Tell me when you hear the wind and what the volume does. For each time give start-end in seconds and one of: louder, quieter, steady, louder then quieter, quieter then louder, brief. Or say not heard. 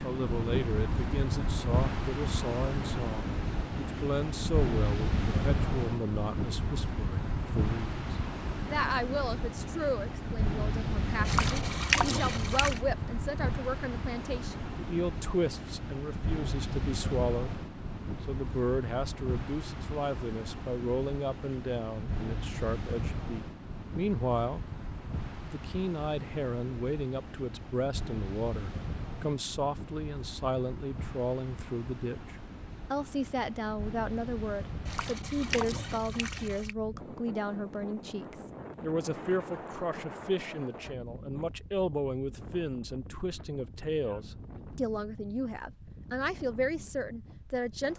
0.0-47.9 quieter.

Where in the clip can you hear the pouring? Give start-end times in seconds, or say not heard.
11.2-12.8, 34.9-36.8.